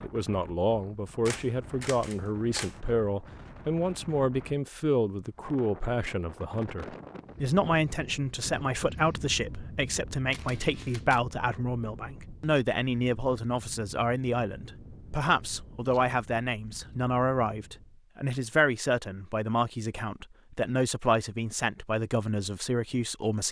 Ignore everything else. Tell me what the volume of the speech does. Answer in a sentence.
The loudness of the speech stays about the same.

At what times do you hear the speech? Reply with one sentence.
The speech can be heard from 0.0 to 23.4 s.